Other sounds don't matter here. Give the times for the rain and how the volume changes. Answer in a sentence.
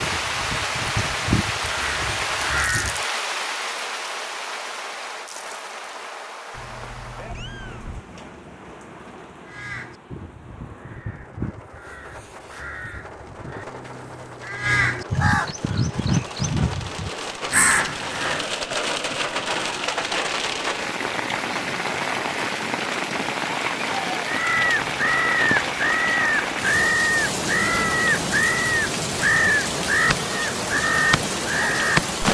You can hear the rain from 0.0 to 32.2 s, getting quieter then louder.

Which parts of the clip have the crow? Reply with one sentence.
You can hear the crow from 0.0 to 3.0 s, from 9.4 to 18.4 s and from 24.2 to 32.1 s.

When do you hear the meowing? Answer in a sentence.
You can hear the meowing from 6.5 to 8.1 s.